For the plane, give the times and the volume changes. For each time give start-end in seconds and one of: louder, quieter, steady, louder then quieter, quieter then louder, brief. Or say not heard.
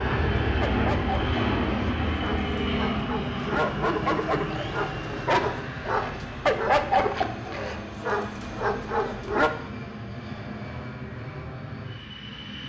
0.0-12.6 quieter.